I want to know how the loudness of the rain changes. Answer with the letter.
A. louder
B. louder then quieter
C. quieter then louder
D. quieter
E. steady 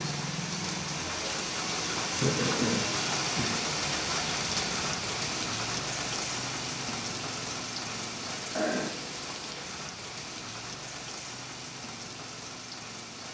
D.